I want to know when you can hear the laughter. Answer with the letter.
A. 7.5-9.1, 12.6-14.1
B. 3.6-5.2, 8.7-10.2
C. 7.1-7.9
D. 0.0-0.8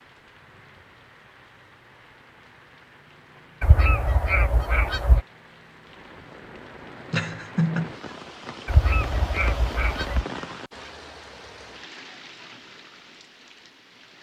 C.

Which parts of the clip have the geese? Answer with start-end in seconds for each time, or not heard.
3.6-5.2, 8.7-10.2.